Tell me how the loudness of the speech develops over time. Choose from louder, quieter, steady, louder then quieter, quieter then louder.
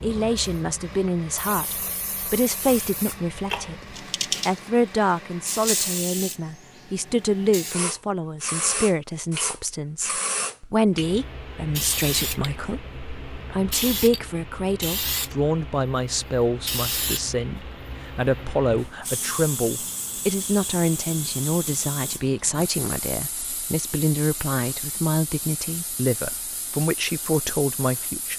steady.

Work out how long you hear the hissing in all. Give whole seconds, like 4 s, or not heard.
28 s.